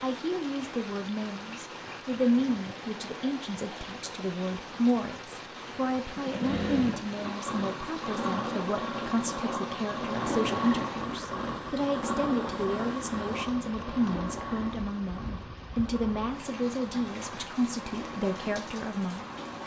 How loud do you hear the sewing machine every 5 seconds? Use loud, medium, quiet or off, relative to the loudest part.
off, loud, loud, medium.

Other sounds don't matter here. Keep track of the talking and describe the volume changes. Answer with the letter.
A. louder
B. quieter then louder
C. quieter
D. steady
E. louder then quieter
D.